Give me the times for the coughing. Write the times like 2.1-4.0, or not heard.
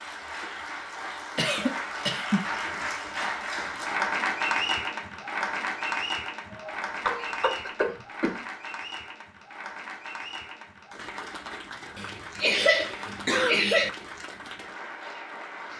1.4-2.5, 6.5-8.4, 11.9-13.9.